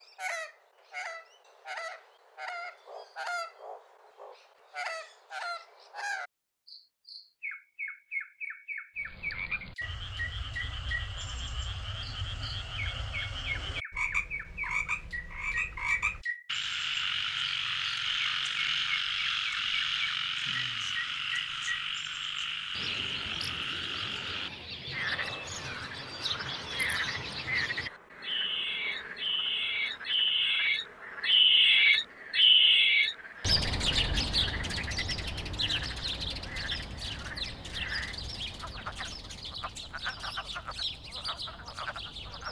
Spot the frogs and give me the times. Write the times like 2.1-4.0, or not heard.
8.9-42.4.